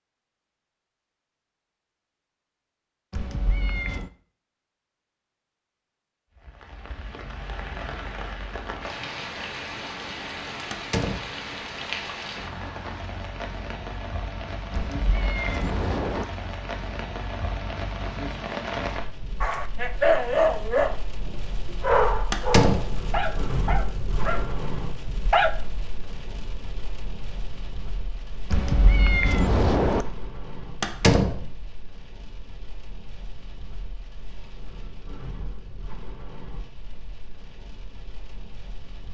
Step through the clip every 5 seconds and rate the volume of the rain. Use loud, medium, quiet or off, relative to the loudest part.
off, loud, loud, loud, loud, medium, quiet, quiet.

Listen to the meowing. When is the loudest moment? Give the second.
30 s.